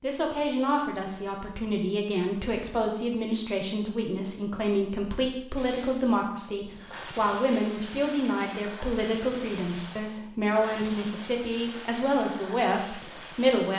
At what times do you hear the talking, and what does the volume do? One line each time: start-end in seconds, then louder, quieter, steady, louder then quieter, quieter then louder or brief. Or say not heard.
0.0-13.7 steady.